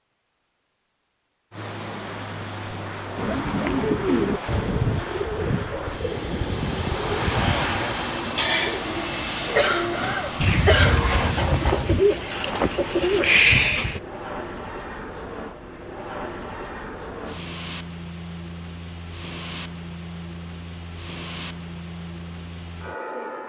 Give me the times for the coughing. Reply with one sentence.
You can hear the coughing from 9.6 to 11.4 s.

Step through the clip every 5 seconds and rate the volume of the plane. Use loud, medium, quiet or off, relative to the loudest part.
medium, loud, medium, medium, medium.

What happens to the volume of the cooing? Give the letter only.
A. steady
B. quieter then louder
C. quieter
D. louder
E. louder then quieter
B.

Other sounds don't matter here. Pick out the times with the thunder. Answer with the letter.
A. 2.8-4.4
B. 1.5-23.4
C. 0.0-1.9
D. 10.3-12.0
D.